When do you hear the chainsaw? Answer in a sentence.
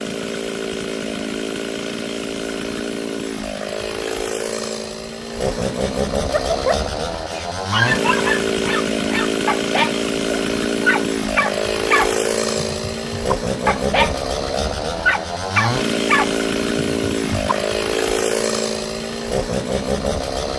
The chainsaw can be heard from 0.0 to 20.5 s.